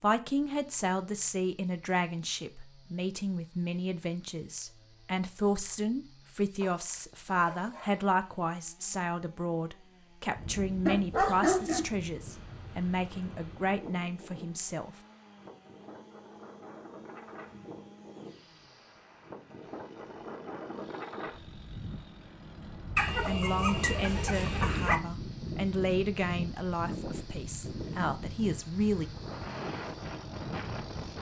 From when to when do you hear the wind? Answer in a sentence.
The wind can be heard from 10.3 to 31.1 s.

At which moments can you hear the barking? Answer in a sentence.
You can hear the barking from 6.6 to 8.1 s, from 10.8 to 11.9 s and from 22.9 to 25.0 s.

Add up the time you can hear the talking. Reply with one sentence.
The talking can be heard for 21 seconds in total.